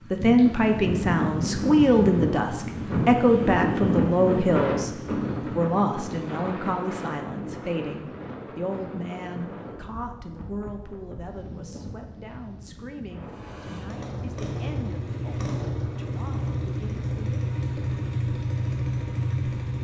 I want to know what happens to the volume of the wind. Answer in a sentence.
The loudness of the wind goes down.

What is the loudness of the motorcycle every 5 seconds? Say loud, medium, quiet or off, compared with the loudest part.
off, off, medium, loud.